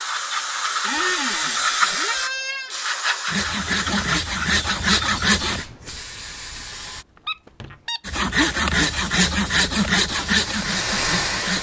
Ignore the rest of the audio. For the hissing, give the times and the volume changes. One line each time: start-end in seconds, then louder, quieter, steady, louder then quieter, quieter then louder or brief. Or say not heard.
0.0-7.0 quieter
8.8-11.5 brief.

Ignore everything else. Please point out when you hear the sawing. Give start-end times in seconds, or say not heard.
3.2-5.7, 8.1-11.5.